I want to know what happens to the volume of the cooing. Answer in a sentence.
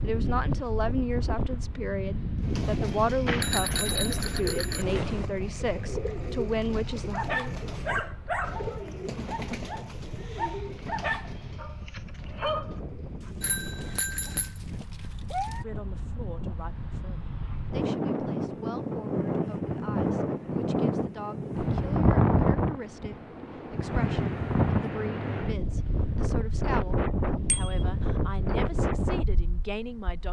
The volume of the cooing goes down.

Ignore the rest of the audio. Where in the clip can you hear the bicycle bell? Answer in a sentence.
You can hear the bicycle bell from 3.2 to 5.2 s, from 13.4 to 14.6 s and from 27.4 to 27.9 s.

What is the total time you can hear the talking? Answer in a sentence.
You can hear the talking for 22 seconds altogether.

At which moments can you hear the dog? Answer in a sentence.
The dog can be heard from 7.1 to 15.7 s.